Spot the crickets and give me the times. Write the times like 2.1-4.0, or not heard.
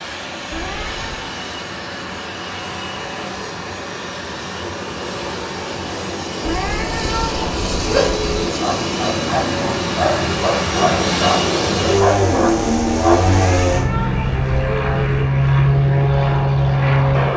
not heard.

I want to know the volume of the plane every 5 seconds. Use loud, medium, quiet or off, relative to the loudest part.
quiet, medium, loud, loud.